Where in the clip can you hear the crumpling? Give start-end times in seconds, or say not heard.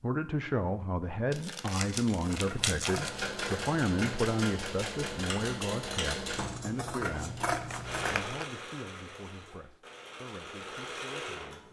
1.3-3.2, 7.5-8.4.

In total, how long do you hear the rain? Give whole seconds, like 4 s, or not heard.
not heard.